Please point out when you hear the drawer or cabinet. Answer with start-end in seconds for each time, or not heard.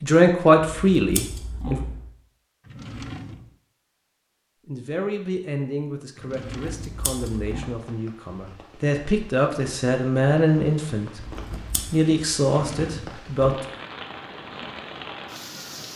2.6-3.5, 6.2-7.0, 12.5-13.2.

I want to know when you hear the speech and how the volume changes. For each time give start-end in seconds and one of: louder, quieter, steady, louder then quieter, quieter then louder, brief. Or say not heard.
0.0-1.8 brief
4.7-13.6 louder.